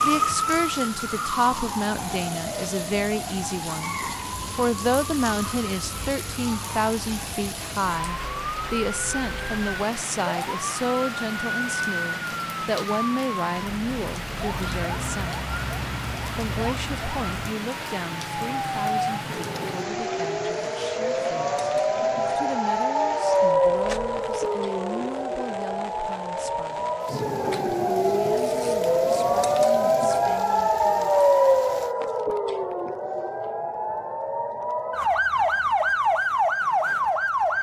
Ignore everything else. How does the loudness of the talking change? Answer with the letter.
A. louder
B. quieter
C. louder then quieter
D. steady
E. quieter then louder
B.